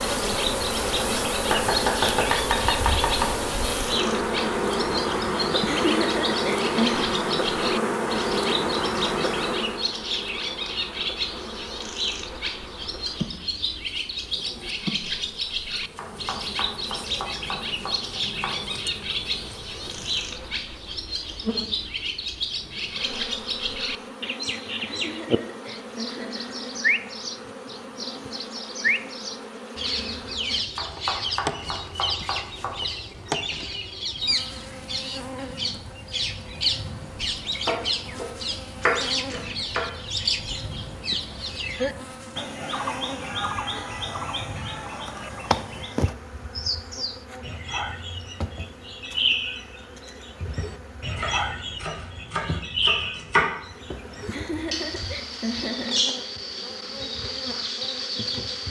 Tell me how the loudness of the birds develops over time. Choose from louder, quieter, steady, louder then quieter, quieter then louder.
steady.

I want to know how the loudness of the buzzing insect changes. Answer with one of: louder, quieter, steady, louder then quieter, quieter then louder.
quieter.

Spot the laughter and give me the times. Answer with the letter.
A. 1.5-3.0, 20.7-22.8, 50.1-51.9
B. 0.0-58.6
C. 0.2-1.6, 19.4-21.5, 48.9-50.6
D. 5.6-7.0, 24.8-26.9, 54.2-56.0
D.